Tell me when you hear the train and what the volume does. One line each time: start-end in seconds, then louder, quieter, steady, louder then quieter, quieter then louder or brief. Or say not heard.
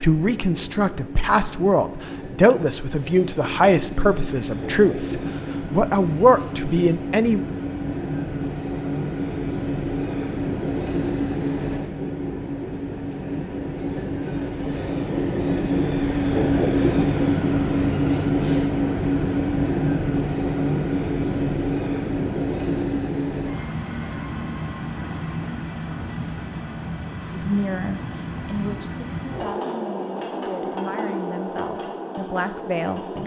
0.0-33.2 louder then quieter.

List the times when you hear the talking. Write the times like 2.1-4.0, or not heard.
0.0-7.5, 27.4-33.2.